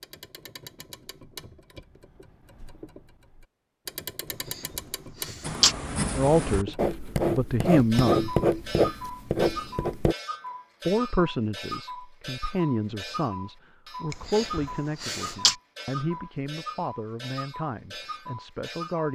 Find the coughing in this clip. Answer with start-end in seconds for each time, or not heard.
4.5-5.8, 14.1-15.6.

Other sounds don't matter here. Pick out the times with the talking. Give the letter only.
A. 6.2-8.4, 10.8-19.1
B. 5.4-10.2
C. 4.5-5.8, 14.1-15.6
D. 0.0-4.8
A.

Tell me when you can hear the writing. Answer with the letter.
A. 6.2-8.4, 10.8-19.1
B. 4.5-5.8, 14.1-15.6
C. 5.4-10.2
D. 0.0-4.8
C.